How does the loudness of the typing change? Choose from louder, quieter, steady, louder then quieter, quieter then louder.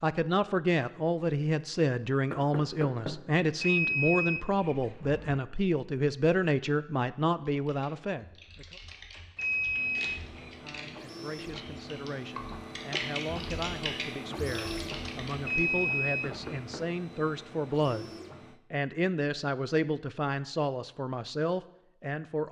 louder.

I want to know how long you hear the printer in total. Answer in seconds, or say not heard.
9 s.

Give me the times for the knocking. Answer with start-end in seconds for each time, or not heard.
2.3-3.2, 16.2-16.9.